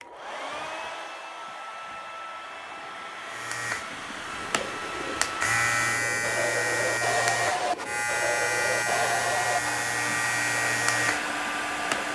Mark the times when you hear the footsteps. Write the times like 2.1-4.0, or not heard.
not heard.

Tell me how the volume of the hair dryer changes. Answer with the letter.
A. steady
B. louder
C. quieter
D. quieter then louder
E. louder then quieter
B.